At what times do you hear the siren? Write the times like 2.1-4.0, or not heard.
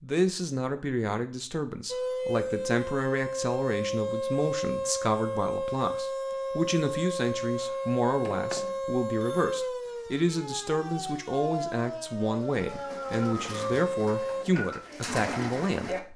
1.9-14.4.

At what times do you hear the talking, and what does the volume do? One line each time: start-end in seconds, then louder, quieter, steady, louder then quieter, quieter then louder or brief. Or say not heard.
0.0-16.1 steady.